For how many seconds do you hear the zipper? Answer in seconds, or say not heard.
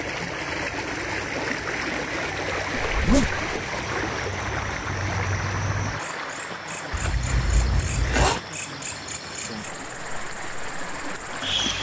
2 s.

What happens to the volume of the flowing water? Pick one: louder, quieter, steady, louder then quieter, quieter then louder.
quieter.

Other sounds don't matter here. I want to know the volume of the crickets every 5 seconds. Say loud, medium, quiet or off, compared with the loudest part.
medium, loud, loud.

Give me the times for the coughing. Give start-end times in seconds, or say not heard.
not heard.